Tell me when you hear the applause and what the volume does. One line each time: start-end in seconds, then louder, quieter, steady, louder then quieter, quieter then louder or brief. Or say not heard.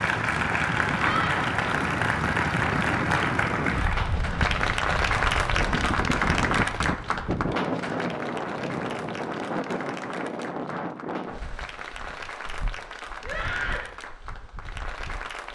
0.0-15.5 quieter.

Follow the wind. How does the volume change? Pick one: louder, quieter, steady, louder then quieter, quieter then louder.
quieter.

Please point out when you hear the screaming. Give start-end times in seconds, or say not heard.
0.9-1.4, 13.2-13.9.